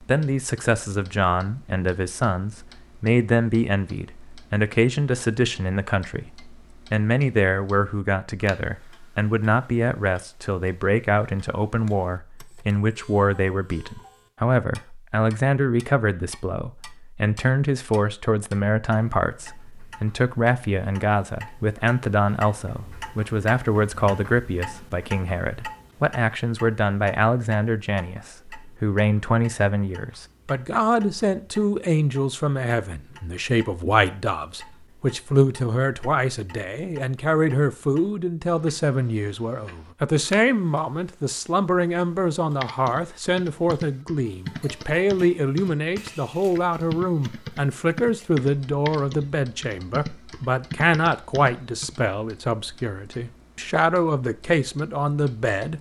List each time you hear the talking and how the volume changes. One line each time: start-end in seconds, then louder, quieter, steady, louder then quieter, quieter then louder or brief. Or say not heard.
0.0-55.7 steady.